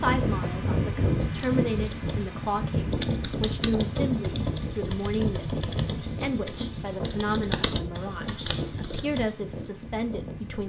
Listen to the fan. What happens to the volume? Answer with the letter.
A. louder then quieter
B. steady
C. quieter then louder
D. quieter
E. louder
D.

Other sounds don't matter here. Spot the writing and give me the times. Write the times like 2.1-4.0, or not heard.
not heard.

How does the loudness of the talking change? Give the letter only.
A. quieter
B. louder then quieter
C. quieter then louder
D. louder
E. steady
E.